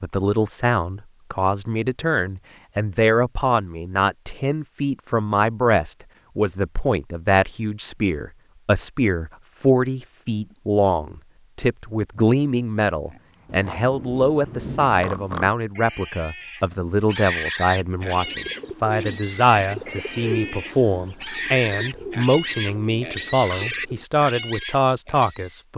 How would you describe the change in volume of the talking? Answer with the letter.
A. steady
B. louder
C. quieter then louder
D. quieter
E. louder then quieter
A.